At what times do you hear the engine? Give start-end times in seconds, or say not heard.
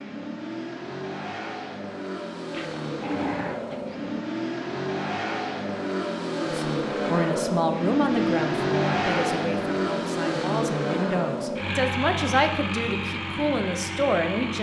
0.0-14.5.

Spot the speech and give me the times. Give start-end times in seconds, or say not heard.
6.4-14.5.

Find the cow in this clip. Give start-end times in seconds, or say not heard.
2.5-4.2.